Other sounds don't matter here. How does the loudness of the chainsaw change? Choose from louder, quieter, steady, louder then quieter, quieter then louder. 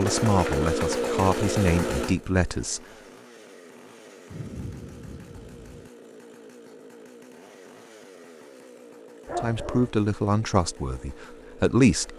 quieter.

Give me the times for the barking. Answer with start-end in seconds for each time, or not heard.
9.2-9.9.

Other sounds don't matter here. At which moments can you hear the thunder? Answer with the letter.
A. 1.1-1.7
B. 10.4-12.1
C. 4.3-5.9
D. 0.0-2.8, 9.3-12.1
C.